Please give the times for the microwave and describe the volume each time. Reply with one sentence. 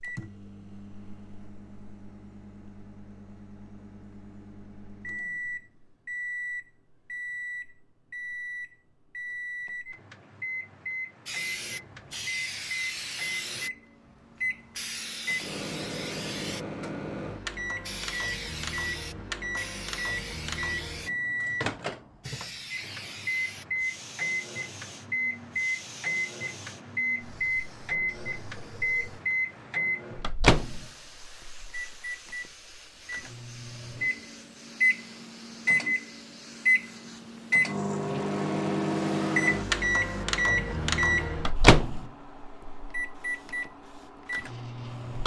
The microwave can be heard from 0.0 to 45.2 s, getting louder.